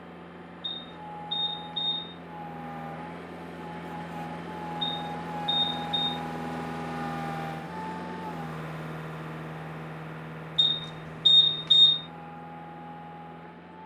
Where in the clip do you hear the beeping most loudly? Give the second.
12 s.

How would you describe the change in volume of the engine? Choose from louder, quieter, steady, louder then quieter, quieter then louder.
louder then quieter.